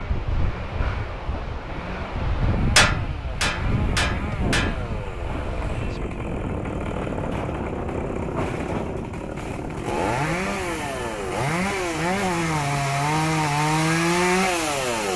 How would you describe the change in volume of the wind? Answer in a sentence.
The volume of the wind goes down.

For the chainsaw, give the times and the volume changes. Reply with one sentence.
The chainsaw can be heard from 0.0 to 15.1 s, getting louder.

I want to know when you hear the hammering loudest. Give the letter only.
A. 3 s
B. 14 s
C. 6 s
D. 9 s
A.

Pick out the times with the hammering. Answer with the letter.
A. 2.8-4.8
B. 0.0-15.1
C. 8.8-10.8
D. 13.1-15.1
A.